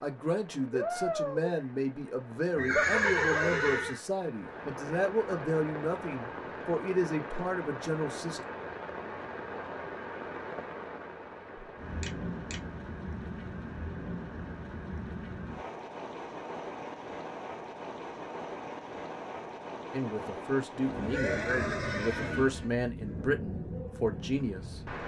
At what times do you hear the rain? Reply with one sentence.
You can hear the rain from 0.0 to 25.0 s.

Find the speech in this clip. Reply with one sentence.
The speech can be heard from 0.0 to 8.4 s and from 19.9 to 24.8 s.